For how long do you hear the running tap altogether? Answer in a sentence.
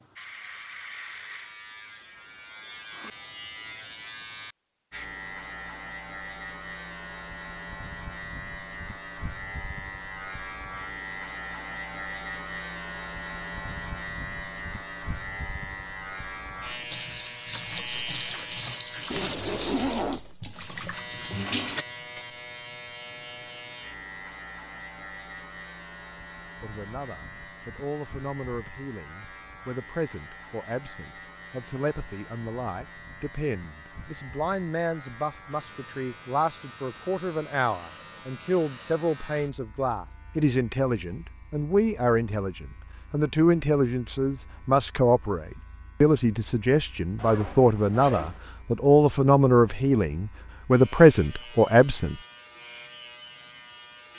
You can hear the running tap for 5 seconds altogether.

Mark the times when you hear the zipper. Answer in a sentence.
You can hear the zipper from 19.1 to 20.3 s and from 47.1 to 48.4 s.